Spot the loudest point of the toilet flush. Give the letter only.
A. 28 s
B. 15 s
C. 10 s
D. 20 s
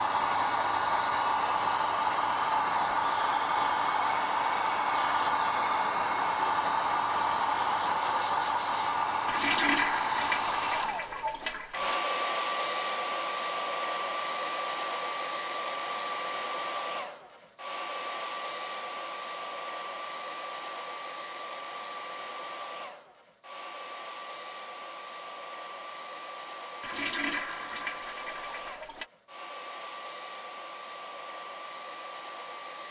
C.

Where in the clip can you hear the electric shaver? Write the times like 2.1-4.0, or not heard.
not heard.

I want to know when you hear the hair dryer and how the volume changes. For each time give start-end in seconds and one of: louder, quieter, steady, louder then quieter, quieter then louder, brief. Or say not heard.
0.0-32.8 quieter.